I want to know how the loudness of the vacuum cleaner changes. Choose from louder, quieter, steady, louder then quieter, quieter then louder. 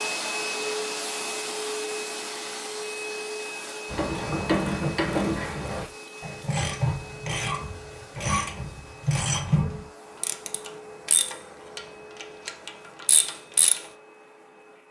quieter.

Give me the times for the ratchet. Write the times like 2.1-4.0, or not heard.
3.9-13.8.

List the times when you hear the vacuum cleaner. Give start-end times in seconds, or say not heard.
0.0-14.8.